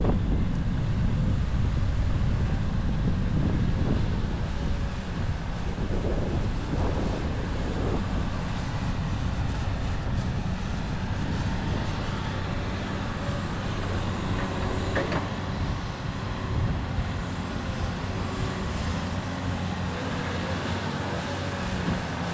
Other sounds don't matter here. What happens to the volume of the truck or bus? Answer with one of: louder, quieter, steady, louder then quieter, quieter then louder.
louder.